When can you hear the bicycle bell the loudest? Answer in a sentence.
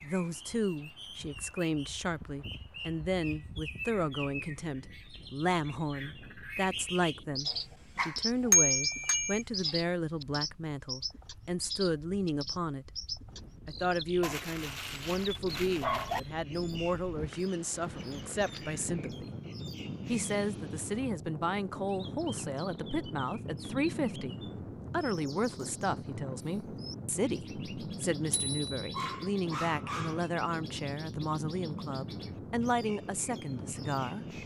The loudest moment of the bicycle bell is at 9 seconds.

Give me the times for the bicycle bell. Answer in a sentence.
You can hear the bicycle bell from 8.5 to 9.4 s and from 28.3 to 28.9 s.